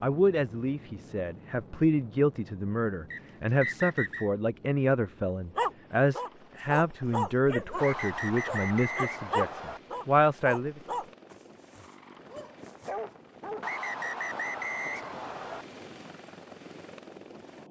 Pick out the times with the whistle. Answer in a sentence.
The whistle can be heard from 3.1 to 4.3 s, from 7.8 to 9.8 s and from 13.6 to 15.7 s.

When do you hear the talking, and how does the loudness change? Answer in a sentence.
The talking can be heard from 0.0 to 10.8 s, at a steady volume.